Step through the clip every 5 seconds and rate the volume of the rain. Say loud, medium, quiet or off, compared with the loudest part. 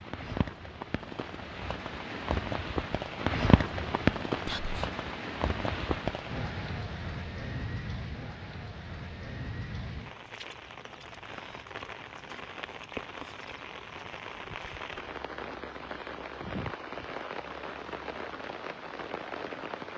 loud, medium, medium, medium.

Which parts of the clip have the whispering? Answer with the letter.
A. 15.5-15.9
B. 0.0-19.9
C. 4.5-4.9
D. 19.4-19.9
C.